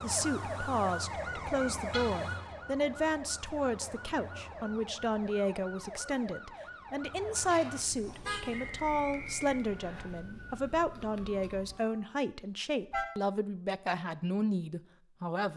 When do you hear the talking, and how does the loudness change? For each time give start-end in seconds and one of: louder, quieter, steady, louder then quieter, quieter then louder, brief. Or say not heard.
0.0-15.5 steady.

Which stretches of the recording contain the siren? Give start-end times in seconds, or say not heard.
0.0-12.1.